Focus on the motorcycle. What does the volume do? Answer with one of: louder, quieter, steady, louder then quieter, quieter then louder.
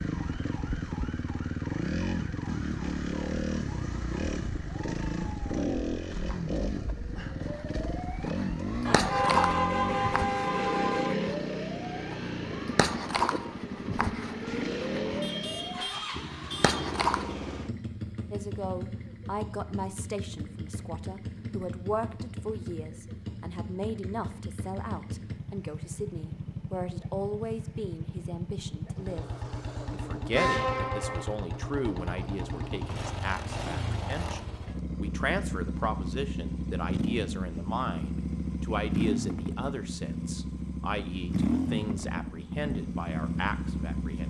quieter then louder.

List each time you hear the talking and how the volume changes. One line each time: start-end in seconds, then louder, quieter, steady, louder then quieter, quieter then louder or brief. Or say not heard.
18.3-29.2 steady
29.9-44.2 steady.